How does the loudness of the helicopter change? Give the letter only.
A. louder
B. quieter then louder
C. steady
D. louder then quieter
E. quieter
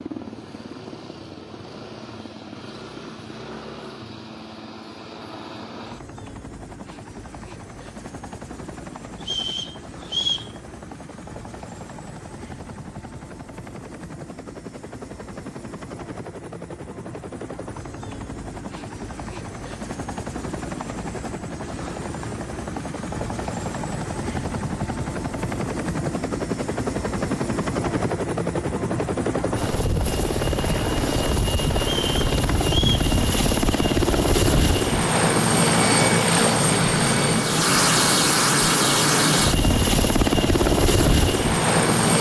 A.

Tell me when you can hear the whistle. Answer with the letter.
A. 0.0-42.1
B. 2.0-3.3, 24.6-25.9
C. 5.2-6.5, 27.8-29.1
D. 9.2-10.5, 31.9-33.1
D.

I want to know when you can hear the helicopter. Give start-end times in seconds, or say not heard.
0.0-42.1.